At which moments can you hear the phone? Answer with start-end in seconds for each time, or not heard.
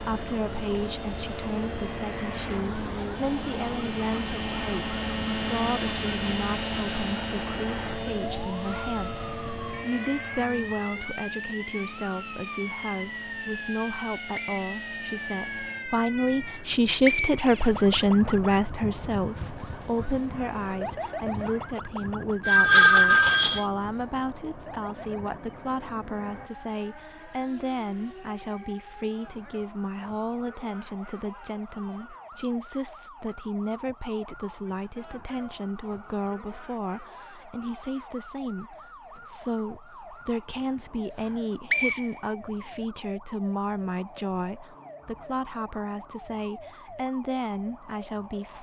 22.4-23.6.